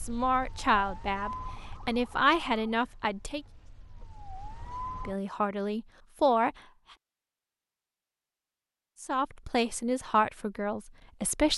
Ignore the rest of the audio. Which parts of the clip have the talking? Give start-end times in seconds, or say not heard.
0.0-3.4, 5.0-6.5, 9.0-11.5.